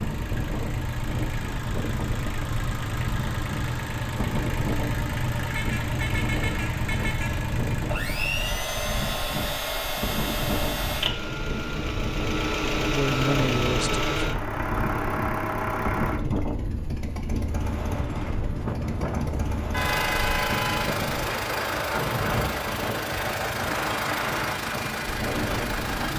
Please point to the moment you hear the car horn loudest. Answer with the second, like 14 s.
20 s.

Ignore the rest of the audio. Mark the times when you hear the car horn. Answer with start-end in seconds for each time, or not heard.
5.5-7.5, 19.7-20.9.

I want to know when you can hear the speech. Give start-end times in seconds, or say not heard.
12.6-14.2.